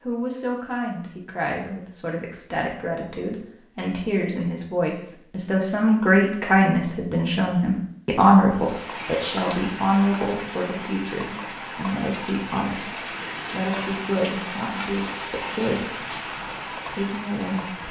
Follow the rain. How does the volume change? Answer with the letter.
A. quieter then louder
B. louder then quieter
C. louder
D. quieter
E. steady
E.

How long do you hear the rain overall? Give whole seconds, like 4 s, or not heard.
9 s.